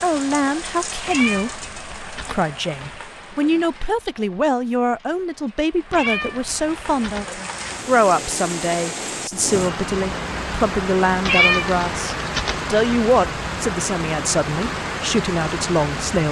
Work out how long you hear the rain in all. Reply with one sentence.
The rain can be heard for 16 seconds in total.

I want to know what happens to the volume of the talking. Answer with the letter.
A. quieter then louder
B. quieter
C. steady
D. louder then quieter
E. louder
C.